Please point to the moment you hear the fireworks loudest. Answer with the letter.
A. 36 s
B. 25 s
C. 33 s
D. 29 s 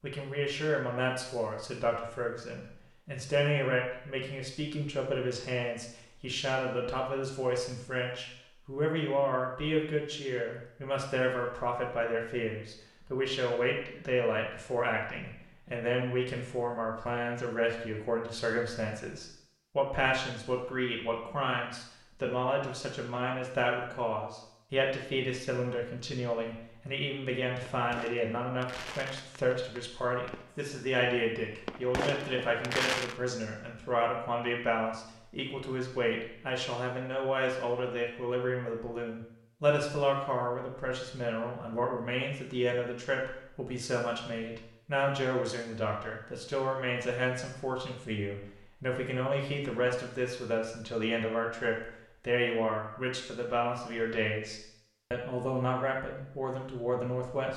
C.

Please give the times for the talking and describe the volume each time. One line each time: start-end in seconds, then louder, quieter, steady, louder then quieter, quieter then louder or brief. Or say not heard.
0.0-57.5 steady.